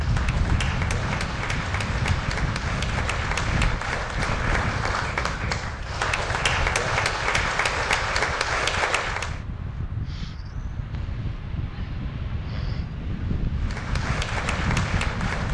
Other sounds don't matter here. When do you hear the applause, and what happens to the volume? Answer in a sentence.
The applause can be heard from 0.0 to 9.4 s, getting louder; and briefly from 13.6 to 15.4 s.